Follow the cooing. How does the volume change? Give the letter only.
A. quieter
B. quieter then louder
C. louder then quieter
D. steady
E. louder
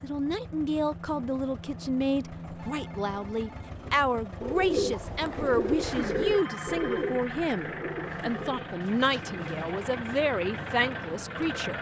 A.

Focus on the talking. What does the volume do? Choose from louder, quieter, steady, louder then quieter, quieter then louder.
steady.